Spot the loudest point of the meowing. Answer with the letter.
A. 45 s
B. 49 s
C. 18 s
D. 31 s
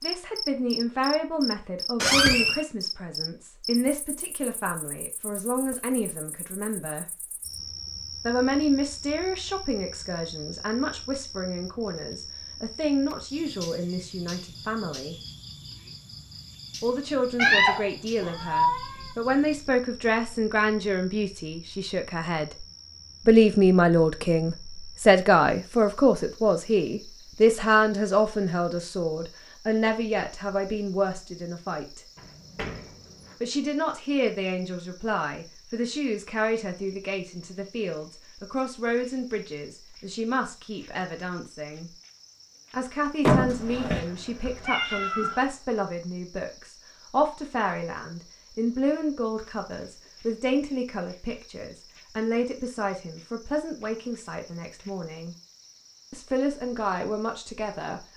C.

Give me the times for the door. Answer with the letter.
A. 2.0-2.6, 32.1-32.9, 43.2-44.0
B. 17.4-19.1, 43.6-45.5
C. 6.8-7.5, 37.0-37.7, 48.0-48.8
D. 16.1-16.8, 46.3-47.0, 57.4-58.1
A.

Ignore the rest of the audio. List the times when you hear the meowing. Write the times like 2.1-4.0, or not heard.
17.4-19.1, 43.6-45.5.